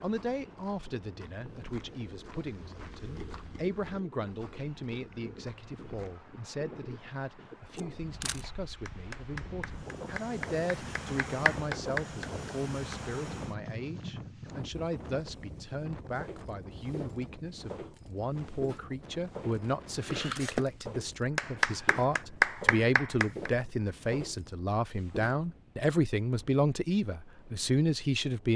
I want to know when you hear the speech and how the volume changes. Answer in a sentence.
The speech can be heard from 0.0 to 28.5 s, getting louder.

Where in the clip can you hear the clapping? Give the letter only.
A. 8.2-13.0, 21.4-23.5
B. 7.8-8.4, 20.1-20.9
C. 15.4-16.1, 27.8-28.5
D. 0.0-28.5
A.